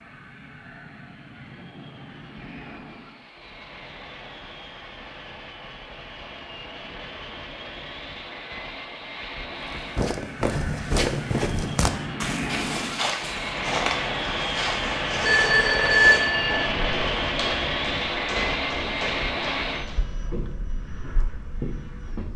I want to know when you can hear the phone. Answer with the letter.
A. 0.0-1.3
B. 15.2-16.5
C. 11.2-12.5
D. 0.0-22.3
B.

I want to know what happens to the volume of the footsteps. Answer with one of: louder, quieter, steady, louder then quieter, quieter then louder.
quieter.